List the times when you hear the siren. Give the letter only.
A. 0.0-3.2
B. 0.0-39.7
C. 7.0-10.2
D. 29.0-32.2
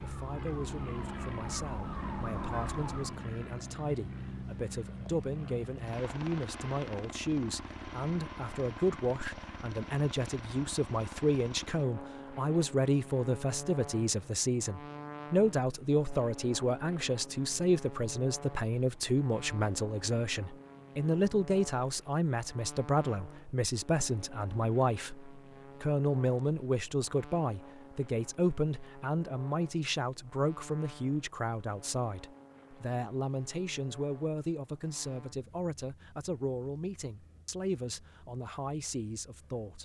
A.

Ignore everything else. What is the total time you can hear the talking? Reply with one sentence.
The talking can be heard for 40 seconds in total.